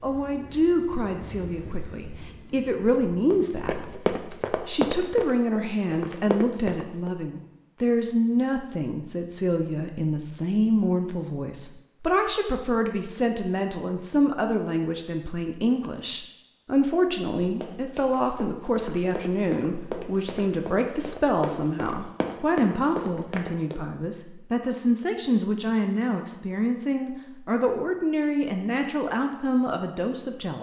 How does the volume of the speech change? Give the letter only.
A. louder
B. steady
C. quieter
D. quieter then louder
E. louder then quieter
B.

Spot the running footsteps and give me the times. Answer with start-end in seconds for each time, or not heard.
3.3-7.1, 17.4-23.8.